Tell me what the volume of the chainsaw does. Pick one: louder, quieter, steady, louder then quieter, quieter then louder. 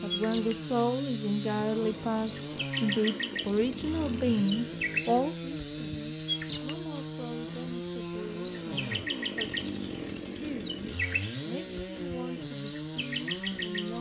steady.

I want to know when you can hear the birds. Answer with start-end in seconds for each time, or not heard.
0.0-13.9.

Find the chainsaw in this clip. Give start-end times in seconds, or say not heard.
0.0-13.9.